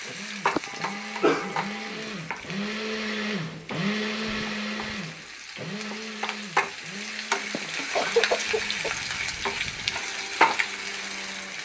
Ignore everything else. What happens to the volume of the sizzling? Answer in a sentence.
The loudness of the sizzling goes down, then up.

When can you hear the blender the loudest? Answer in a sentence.
The loudest moment of the blender is at 4 seconds.